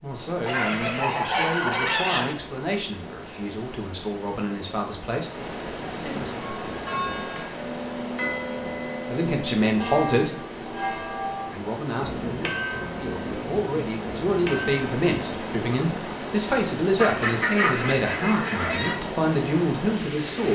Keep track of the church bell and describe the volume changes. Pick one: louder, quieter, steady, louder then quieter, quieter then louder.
steady.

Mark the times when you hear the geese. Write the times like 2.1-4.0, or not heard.
0.5-2.4, 16.9-18.9.